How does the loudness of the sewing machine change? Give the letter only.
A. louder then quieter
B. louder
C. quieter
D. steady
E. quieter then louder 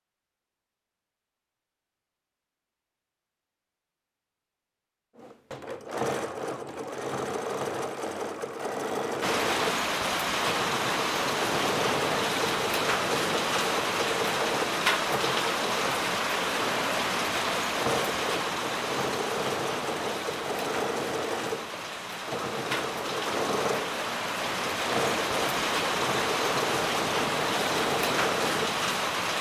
D.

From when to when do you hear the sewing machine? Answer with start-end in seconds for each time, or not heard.
5.2-29.3.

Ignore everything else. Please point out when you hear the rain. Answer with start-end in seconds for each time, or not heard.
9.2-29.3.